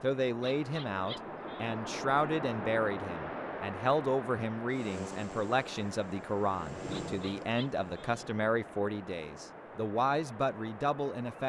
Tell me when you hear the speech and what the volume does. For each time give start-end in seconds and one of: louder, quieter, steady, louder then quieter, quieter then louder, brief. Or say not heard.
0.0-11.4 steady.